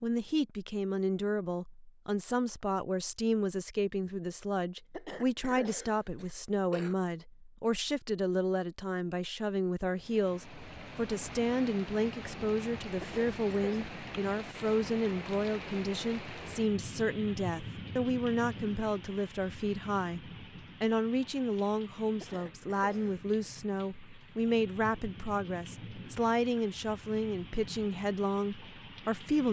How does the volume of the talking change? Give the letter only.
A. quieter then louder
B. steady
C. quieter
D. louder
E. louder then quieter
B.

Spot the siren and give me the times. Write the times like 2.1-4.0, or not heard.
not heard.